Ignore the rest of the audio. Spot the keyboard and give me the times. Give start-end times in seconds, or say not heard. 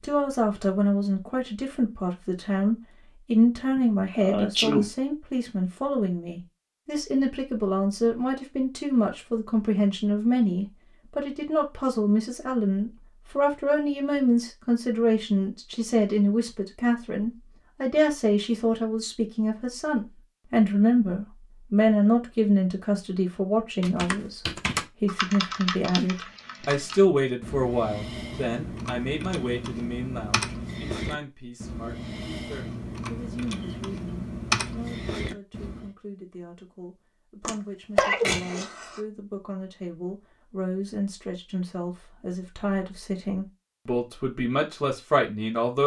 23.8-35.9.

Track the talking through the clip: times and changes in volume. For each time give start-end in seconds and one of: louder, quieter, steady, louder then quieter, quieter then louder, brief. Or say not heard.
0.0-24.4 steady
25.0-45.8 quieter then louder.